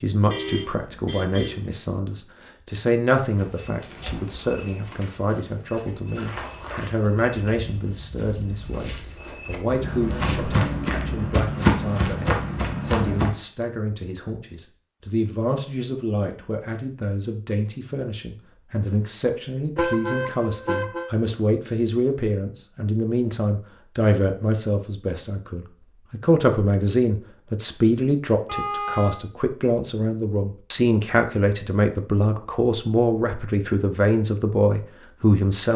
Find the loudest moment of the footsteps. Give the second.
12 s.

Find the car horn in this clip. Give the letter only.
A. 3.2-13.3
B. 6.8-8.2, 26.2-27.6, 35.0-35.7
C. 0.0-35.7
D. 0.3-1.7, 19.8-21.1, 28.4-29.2
D.